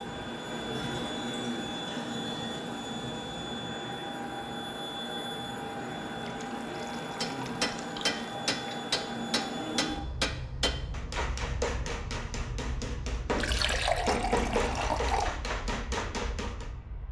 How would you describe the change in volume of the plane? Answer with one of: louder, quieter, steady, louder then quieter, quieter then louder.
quieter.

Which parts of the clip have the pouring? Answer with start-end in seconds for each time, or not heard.
0.7-2.6, 6.2-8.2, 13.3-15.3.